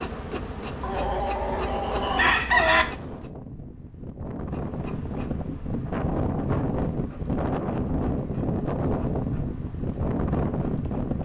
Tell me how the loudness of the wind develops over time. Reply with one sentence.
The loudness of the wind goes up.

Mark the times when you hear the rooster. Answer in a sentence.
The rooster can be heard from 0.8 to 2.9 s.